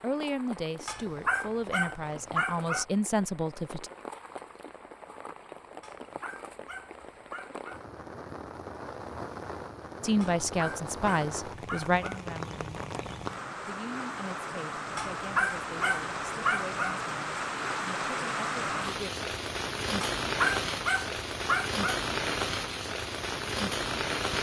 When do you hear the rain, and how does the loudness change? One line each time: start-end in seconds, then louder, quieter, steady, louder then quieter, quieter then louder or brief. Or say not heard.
0.0-24.3 louder.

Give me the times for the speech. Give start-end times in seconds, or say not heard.
0.0-3.9, 10.0-19.1.